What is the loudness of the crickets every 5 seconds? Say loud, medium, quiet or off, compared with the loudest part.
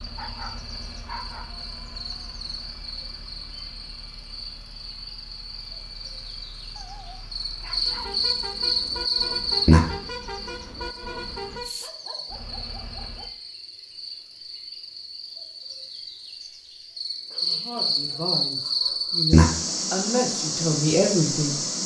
quiet, loud, quiet, loud, loud.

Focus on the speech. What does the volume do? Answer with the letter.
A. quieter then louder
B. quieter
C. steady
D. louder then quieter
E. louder
A.